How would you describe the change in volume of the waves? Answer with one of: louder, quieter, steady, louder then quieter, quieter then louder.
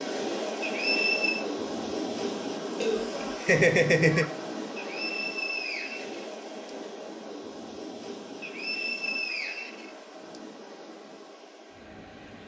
quieter.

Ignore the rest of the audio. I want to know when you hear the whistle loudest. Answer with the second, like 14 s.
1 s.